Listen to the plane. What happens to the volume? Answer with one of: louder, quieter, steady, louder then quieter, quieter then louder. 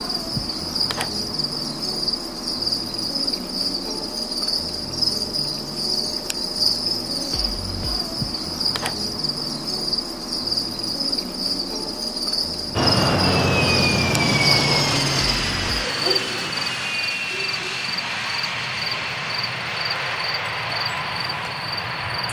quieter.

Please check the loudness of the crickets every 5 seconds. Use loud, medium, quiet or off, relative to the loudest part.
loud, loud, loud, loud, medium.